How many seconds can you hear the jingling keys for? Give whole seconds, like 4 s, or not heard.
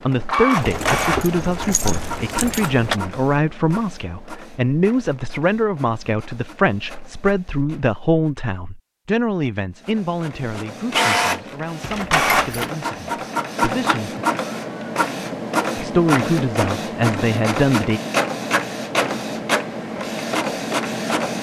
3 s.